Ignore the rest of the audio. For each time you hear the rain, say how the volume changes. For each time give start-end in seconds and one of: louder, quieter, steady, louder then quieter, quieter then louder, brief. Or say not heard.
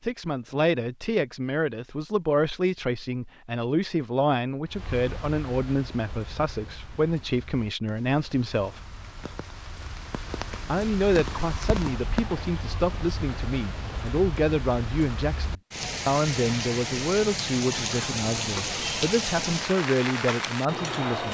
4.7-21.2 louder.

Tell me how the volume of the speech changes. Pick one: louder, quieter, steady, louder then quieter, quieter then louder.
steady.